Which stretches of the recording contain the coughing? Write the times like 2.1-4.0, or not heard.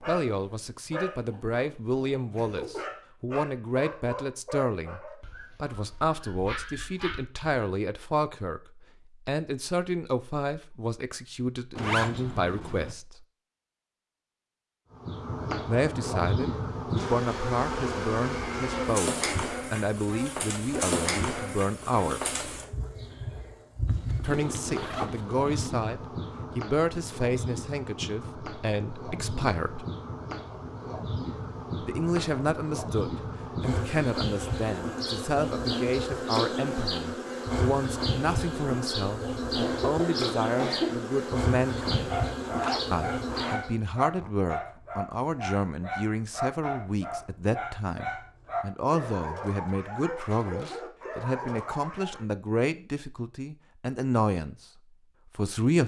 39.5-41.0.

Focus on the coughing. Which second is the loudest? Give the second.
41 s.